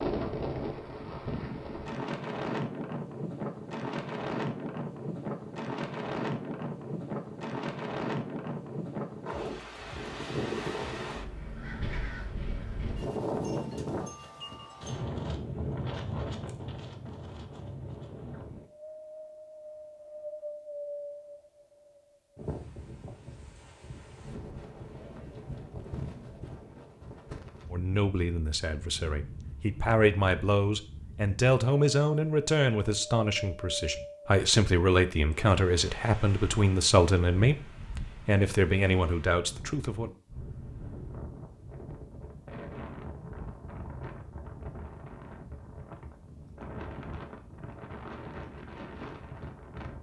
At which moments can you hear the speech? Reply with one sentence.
The speech can be heard from 27.7 to 40.1 s.